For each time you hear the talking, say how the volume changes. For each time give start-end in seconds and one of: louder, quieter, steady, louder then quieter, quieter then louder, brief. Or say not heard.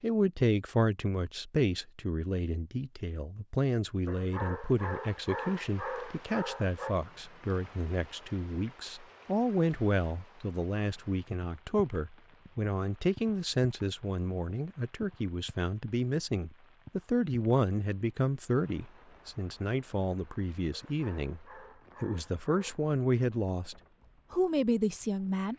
0.0-25.5 steady.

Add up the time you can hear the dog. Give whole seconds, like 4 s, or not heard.
5 s.